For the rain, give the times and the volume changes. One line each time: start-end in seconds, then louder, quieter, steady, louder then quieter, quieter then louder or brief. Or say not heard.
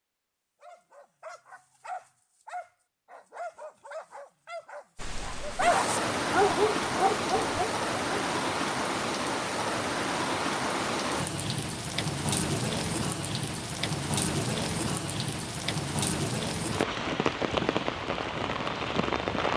5.0-19.5 steady.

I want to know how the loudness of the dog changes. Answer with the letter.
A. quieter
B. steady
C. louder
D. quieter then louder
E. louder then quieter
C.